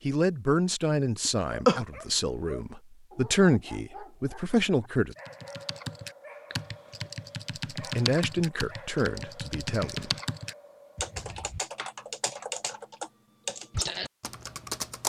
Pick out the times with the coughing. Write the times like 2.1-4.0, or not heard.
1.2-1.9.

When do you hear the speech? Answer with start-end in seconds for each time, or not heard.
0.0-5.2, 8.0-10.1.